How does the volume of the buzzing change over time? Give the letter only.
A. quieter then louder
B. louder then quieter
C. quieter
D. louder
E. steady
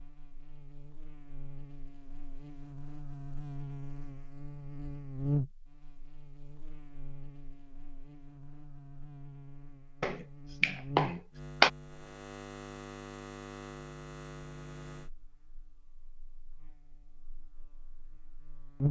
B.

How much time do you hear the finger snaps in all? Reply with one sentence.
The finger snaps can be heard for 2 seconds in total.